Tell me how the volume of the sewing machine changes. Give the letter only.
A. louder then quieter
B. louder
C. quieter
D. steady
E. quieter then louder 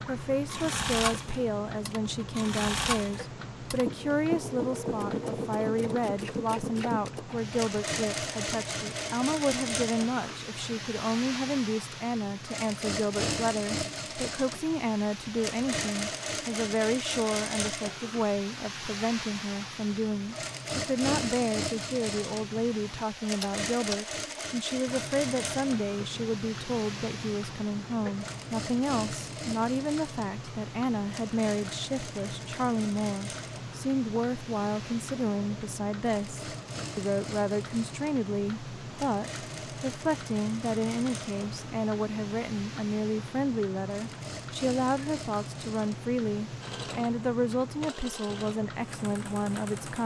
C.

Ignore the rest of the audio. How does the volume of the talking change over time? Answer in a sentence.
The loudness of the talking stays about the same.